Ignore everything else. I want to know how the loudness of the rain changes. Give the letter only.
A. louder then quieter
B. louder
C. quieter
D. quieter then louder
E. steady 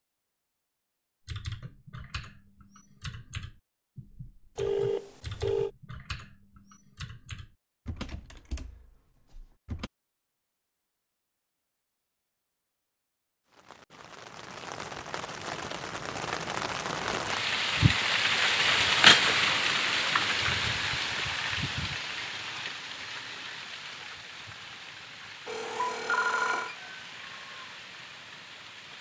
A.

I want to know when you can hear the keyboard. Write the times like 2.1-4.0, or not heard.
1.2-9.9.